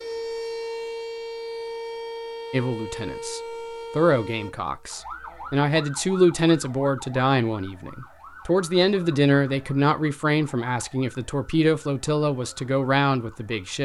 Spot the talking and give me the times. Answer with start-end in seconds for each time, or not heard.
2.5-13.8.